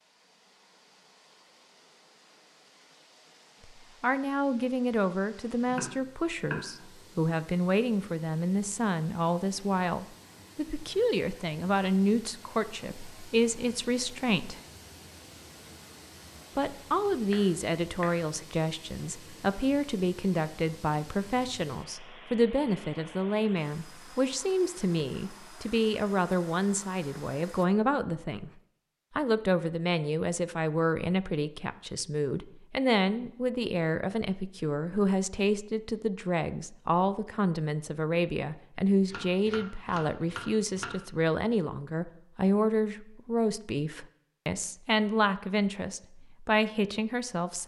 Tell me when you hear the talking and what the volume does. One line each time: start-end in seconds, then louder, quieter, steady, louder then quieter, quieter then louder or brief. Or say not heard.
4.0-14.6 steady
16.6-28.5 steady
29.1-47.6 steady.